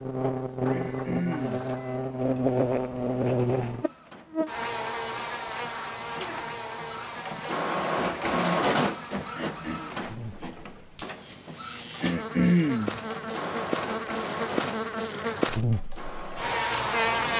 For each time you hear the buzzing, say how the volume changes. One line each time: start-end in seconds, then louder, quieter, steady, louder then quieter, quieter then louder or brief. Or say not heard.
0.0-17.3 quieter then louder.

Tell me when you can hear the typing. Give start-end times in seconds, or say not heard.
not heard.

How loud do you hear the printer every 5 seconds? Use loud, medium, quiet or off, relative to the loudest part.
quiet, loud, medium, medium.